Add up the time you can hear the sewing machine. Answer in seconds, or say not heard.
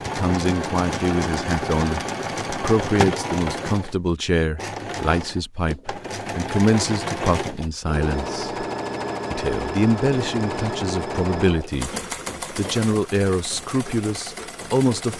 15 s.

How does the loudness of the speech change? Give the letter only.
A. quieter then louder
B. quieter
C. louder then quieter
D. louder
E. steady
E.